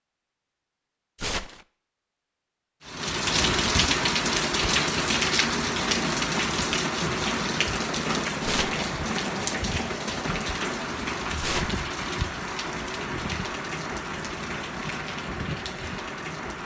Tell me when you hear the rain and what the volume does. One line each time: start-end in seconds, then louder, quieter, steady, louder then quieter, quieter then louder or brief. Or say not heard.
2.9-16.6 quieter.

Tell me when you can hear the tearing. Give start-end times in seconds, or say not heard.
1.1-1.6, 8.4-8.8, 11.4-11.8.